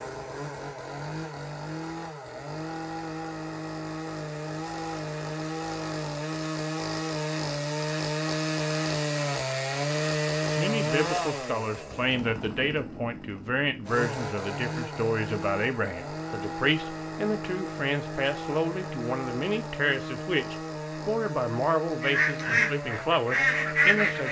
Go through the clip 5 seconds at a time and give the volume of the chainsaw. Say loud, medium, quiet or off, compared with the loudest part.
medium, loud, loud, medium, medium.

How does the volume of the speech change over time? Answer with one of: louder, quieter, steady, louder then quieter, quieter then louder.
steady.